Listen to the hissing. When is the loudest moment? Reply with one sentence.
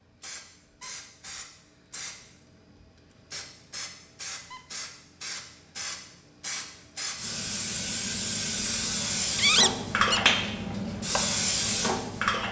The volume of the hissing peaks at 10 seconds.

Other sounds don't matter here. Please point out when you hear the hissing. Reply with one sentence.
You can hear the hissing from 0.2 to 12.4 s.